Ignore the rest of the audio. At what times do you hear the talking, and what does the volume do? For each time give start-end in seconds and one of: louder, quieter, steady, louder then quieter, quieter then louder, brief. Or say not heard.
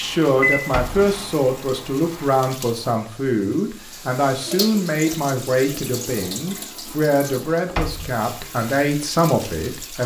0.0-10.0 steady.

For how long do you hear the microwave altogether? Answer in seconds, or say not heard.
2 s.